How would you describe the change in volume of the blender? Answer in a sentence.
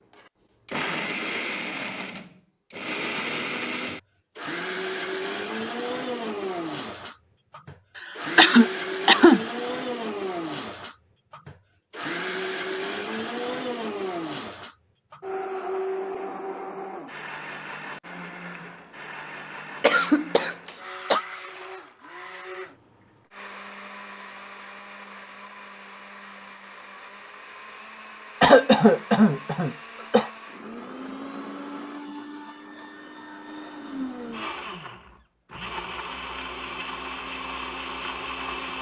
The volume of the blender goes down, then up.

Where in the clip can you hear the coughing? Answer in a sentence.
You can hear the coughing from 8.0 to 9.4 s, from 19.8 to 21.2 s and from 28.4 to 30.3 s.